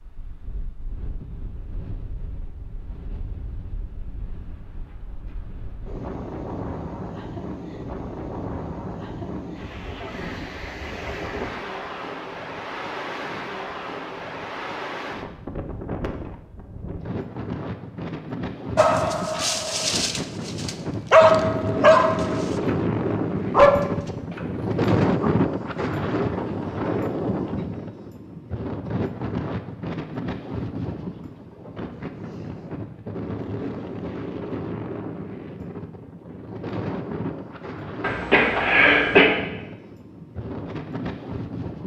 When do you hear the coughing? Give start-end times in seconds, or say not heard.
38.0-39.2.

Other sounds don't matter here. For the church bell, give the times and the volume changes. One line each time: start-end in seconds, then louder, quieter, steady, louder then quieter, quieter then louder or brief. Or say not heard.
not heard.